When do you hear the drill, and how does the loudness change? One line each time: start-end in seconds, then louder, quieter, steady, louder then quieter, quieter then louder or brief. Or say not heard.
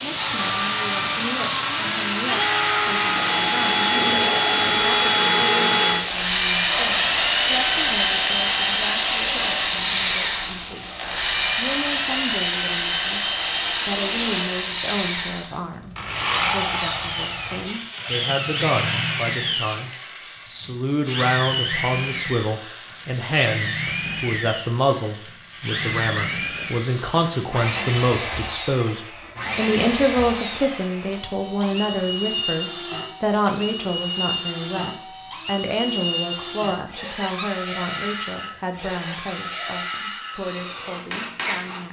0.0-41.8 quieter.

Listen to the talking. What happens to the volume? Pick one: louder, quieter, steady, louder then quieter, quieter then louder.
louder then quieter.